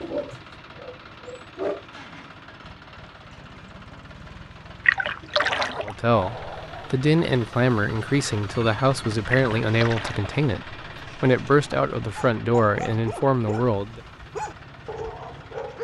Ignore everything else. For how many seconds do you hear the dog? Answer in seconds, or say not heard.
7 s.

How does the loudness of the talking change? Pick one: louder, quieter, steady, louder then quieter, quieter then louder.
steady.